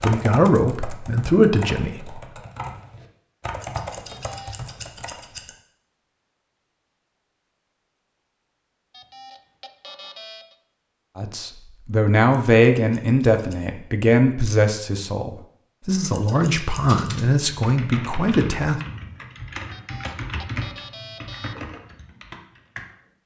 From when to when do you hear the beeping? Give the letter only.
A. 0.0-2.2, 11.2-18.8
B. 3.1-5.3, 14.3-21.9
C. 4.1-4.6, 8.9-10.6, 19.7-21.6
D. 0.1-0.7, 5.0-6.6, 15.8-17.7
C.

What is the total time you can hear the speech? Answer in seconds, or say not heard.
10 s.